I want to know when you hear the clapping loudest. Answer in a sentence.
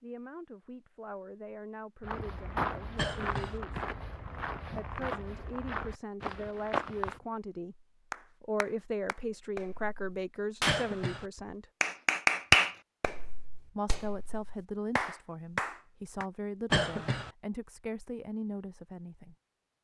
The volume of the clapping peaks at 12 seconds.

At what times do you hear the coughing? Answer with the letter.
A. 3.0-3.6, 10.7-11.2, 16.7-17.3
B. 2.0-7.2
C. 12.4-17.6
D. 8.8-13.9
A.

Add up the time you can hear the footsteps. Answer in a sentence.
The footsteps can be heard for 5 seconds in total.